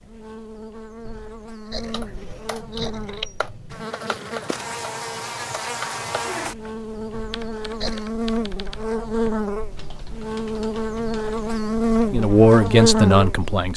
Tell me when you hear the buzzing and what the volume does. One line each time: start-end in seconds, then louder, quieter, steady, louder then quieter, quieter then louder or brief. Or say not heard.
0.0-13.7 louder.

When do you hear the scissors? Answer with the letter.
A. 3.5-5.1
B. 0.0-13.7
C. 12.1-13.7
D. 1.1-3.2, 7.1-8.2
D.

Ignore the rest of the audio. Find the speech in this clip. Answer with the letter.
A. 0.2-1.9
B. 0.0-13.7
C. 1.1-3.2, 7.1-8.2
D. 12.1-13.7
D.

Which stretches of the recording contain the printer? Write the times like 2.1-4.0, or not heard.
not heard.